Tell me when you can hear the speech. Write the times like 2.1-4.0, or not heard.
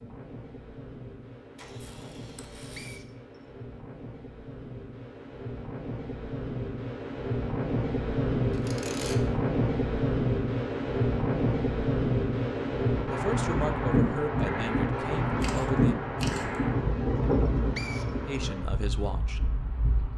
13.1-15.9, 18.2-19.4.